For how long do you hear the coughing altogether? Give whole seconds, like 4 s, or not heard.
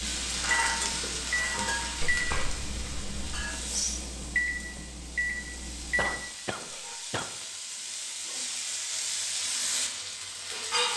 3 s.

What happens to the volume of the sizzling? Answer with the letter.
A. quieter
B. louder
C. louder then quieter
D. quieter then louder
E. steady
D.